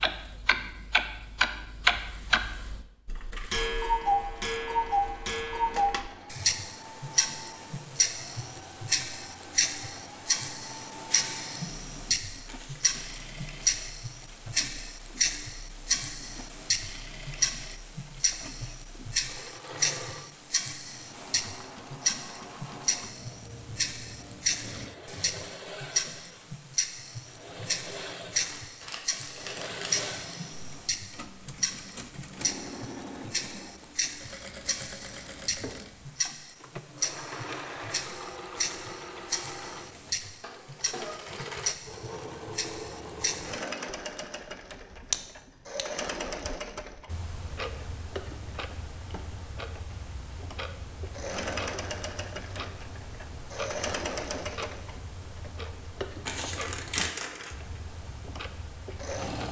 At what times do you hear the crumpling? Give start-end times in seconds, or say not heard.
12.4-13.1, 28.4-30.1, 56.2-57.5.